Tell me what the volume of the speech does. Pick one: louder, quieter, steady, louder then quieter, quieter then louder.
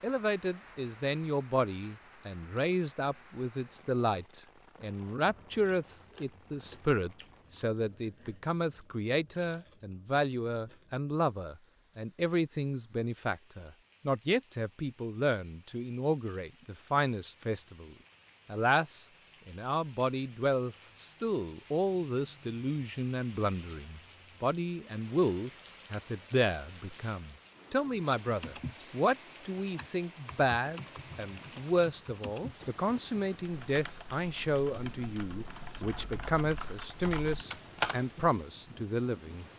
steady.